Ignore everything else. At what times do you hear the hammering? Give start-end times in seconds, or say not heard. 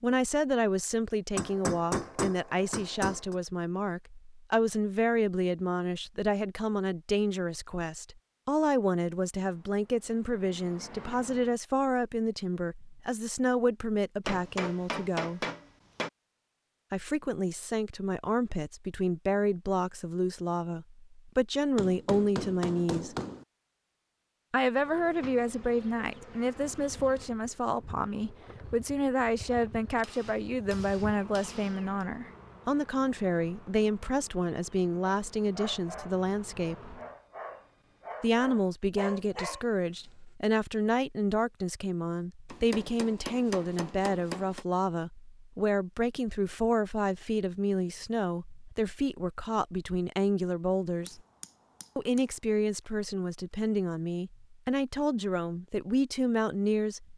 1.4-3.4, 14.2-16.1, 21.8-23.4, 29.9-32.0, 42.5-44.6, 51.0-52.2.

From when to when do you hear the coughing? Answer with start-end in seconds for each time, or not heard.
not heard.